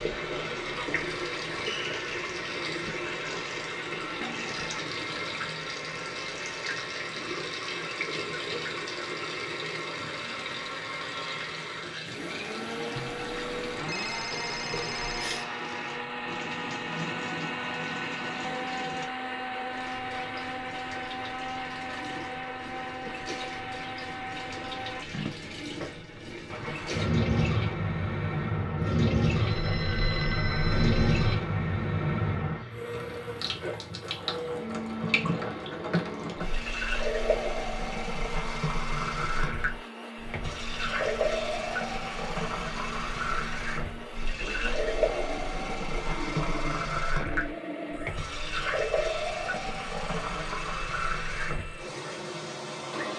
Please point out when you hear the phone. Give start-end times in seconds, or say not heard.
12.9-15.4, 29.4-31.4, 46.3-48.1.